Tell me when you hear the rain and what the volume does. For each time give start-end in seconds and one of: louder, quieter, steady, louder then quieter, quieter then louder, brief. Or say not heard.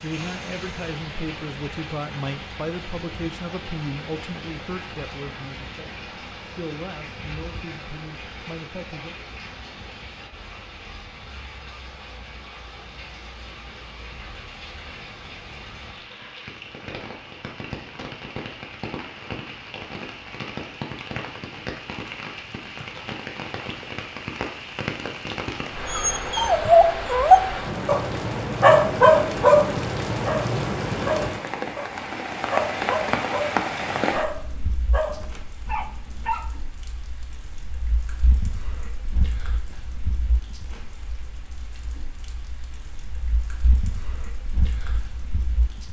0.0-45.8 louder then quieter.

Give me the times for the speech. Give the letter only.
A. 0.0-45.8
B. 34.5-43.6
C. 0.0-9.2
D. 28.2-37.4
C.